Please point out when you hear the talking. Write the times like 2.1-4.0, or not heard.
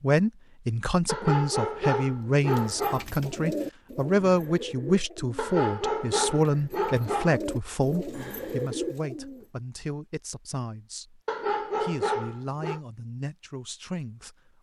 0.0-11.2, 11.8-14.3.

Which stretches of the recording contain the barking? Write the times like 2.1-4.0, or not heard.
1.1-3.0, 5.3-7.4, 11.2-12.8.